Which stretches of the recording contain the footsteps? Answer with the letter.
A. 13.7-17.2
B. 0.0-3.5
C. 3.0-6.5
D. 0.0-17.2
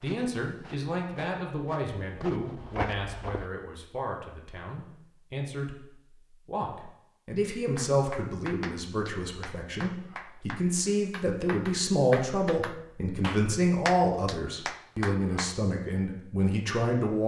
B.